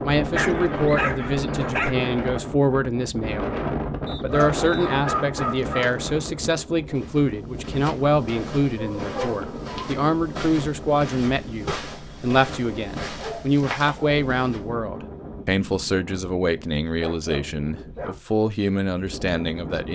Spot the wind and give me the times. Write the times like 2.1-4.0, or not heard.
0.0-19.9.